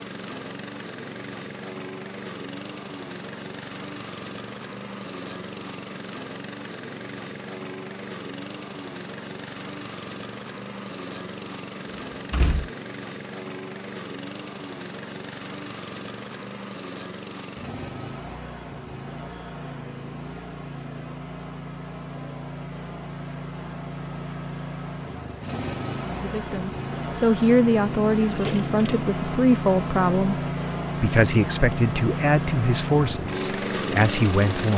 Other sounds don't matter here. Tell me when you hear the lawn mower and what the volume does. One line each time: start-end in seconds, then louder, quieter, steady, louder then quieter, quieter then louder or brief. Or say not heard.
0.0-34.7 louder.